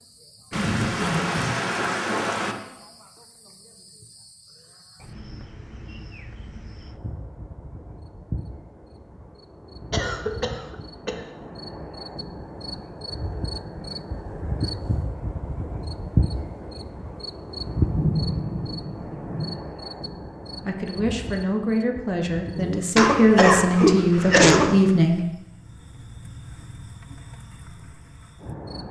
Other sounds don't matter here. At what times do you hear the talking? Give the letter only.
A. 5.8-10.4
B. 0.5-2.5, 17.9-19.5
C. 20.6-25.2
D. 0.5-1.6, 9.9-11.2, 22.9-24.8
C.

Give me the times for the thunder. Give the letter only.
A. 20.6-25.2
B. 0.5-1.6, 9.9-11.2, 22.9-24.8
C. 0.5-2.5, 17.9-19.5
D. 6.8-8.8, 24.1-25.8
C.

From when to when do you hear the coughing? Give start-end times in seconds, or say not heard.
0.5-1.6, 9.9-11.2, 22.9-24.8.